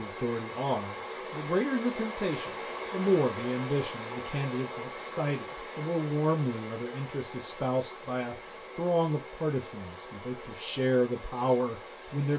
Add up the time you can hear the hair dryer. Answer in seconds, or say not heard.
12 s.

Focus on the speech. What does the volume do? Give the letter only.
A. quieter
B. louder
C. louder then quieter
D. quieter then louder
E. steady
E.